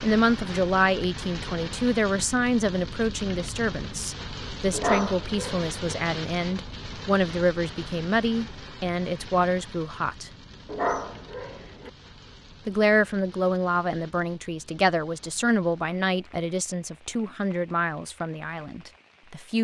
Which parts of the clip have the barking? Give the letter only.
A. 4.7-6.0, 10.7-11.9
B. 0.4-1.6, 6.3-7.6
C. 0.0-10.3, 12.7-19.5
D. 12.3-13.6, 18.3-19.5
A.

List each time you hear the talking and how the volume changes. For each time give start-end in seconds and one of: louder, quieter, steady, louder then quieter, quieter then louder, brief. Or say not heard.
0.0-10.3 steady
12.7-19.5 quieter.